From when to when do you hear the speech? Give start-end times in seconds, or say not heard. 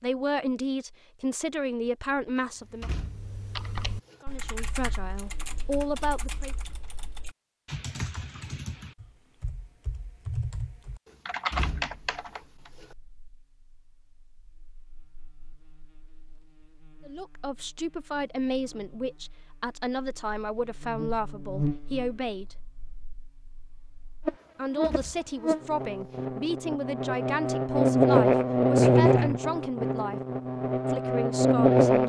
0.0-2.9, 4.2-6.5, 17.1-22.6, 24.6-30.2, 30.9-32.0.